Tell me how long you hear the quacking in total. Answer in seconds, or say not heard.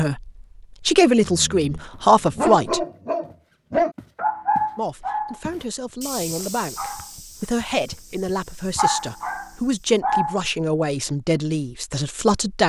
not heard.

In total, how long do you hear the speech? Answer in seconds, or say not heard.
11 s.